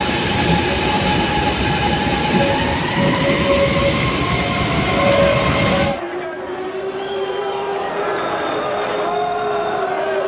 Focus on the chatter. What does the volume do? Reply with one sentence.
The volume of the chatter goes down, then up.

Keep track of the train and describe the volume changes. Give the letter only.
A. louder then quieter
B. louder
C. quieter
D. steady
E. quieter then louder
C.